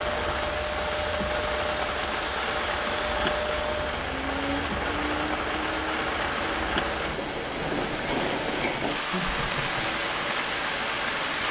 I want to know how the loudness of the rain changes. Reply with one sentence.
The volume of the rain stays about the same.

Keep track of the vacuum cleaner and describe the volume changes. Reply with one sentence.
The volume of the vacuum cleaner stays about the same.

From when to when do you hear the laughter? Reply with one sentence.
You can hear the laughter from 9.1 to 9.9 s.